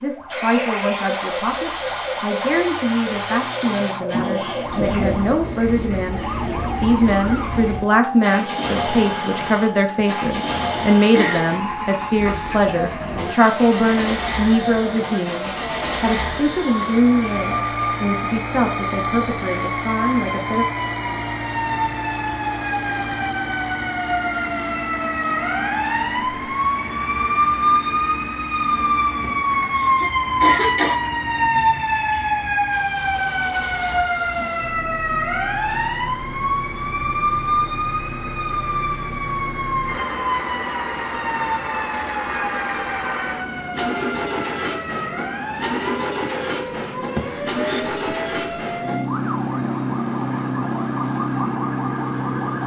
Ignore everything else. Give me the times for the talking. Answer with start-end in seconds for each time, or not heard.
0.0-20.6.